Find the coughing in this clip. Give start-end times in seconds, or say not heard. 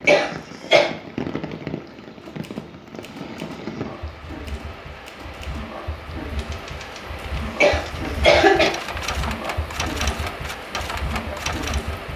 0.1-0.9, 7.6-8.7.